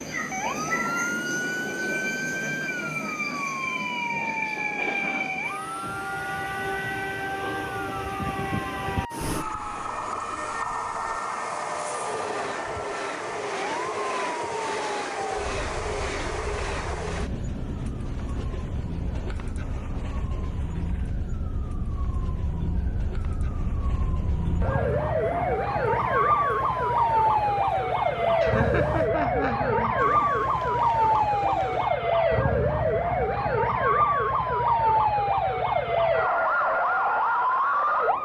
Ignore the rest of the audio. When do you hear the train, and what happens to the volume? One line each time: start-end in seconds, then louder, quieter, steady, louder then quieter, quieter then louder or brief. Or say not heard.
0.0-29.1 quieter.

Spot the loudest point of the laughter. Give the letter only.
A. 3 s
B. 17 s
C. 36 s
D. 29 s
D.